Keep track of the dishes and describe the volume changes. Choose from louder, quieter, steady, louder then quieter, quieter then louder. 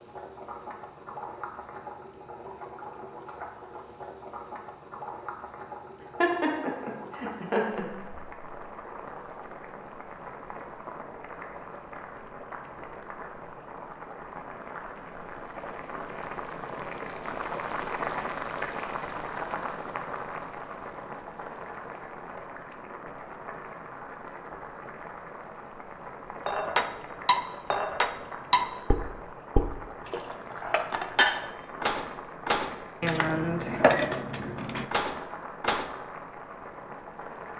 steady.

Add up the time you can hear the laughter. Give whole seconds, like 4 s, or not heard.
2 s.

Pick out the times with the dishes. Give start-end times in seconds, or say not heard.
26.4-35.9.